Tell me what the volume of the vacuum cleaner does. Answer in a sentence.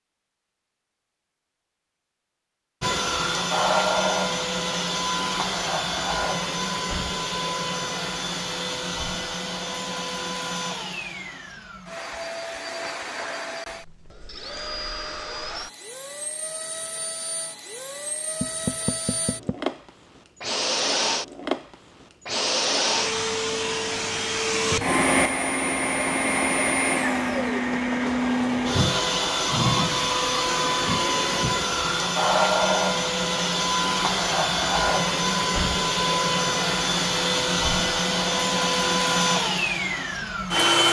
The loudness of the vacuum cleaner goes down, then up.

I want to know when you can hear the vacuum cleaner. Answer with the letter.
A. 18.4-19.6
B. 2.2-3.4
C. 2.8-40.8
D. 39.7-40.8
C.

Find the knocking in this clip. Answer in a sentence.
The knocking can be heard from 18.4 to 19.6 s.